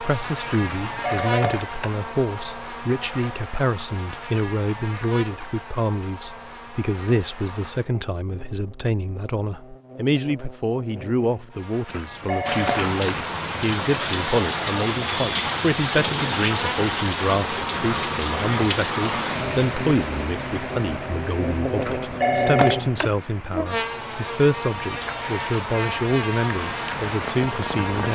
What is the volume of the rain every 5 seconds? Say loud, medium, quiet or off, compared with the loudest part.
off, off, loud, loud, medium, medium.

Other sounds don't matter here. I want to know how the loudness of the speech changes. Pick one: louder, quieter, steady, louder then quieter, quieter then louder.
steady.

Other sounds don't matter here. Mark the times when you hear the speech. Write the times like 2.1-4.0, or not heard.
0.0-28.0.